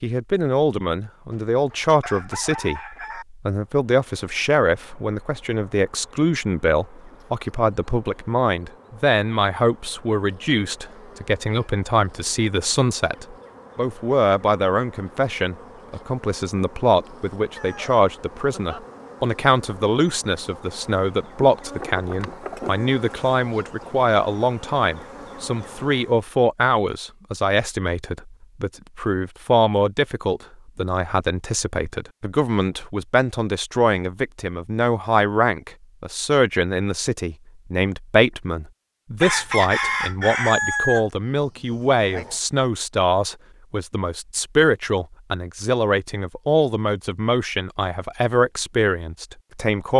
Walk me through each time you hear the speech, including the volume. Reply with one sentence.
The speech can be heard from 0.0 to 49.9 s, at a steady volume.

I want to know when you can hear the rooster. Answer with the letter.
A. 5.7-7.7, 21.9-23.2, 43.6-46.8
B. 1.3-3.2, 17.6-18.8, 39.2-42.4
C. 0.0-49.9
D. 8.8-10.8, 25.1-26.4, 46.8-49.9
B.